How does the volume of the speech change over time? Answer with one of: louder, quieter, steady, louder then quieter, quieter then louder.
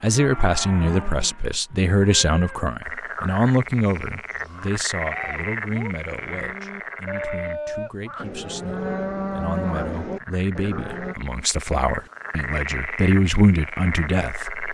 quieter then louder.